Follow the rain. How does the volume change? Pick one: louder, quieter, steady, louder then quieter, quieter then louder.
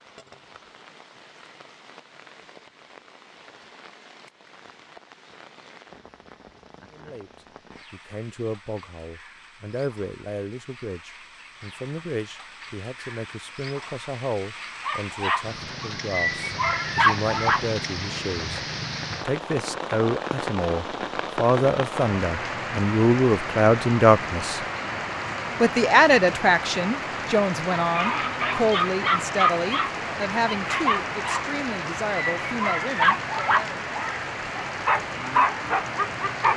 louder.